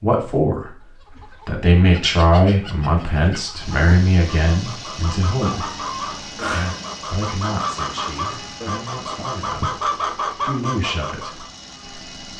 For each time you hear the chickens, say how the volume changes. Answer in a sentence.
The chickens can be heard from 0.8 to 11.4 s, getting louder.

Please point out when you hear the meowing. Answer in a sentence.
The meowing can be heard from 5.5 to 7.0 s.